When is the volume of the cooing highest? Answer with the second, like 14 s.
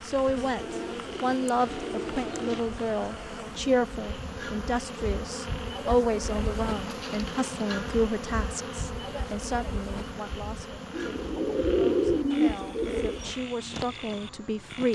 12 s.